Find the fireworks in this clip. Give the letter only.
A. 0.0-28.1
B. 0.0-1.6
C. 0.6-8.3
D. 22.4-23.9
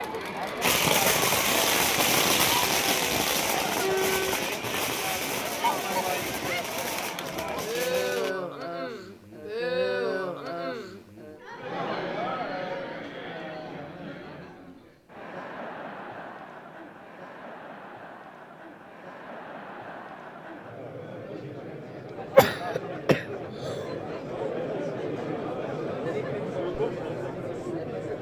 C.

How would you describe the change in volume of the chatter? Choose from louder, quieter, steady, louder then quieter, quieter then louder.
quieter then louder.